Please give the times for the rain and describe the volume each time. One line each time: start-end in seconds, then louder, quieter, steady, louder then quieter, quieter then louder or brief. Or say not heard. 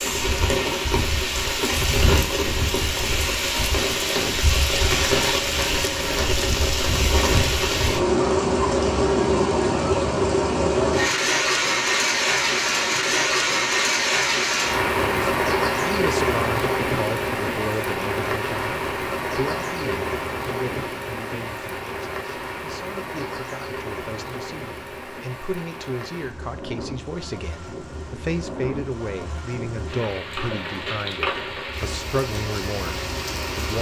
0.0-33.7 quieter.